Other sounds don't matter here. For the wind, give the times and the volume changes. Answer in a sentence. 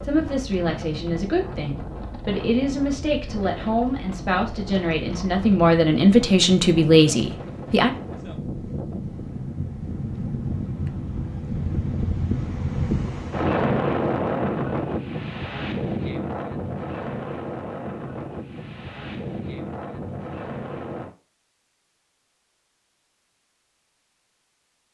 The wind can be heard from 0.0 to 21.1 s, getting louder then quieter.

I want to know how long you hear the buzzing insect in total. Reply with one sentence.
The buzzing insect can't be heard in this clip.